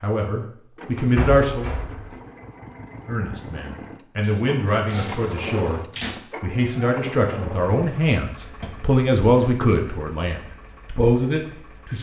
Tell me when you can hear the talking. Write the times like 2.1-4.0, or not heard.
0.0-1.7, 3.0-5.8, 6.4-11.9.